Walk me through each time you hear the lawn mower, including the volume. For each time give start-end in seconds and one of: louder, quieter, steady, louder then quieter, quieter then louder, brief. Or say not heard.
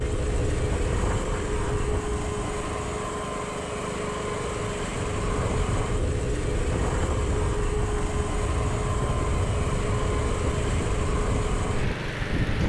0.0-12.6 steady.